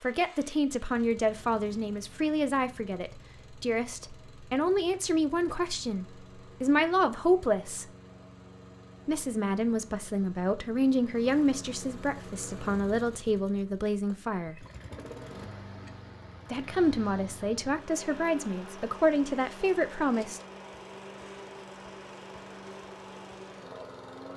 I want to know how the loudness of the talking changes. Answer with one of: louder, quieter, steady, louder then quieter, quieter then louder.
steady.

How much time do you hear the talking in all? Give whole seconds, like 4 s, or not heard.
17 s.